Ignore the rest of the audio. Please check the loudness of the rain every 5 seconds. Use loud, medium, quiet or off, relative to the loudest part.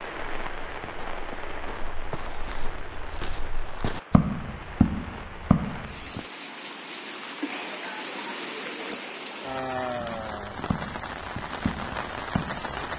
medium, loud, loud.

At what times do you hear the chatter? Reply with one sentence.
The chatter can't be heard in this clip.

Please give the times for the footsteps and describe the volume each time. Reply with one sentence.
You can hear the footsteps from 0.0 to 6.2 s, getting louder; and briefly from 10.0 to 12.7 s.